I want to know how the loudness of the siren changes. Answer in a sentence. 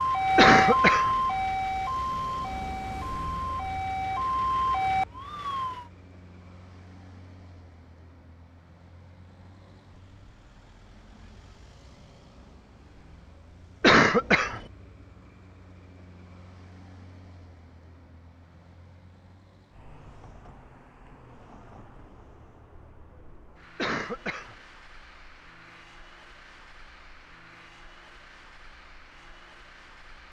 The volume of the siren goes down, then up.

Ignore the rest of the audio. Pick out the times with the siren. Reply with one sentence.
The siren can be heard from 0.0 to 5.8 s.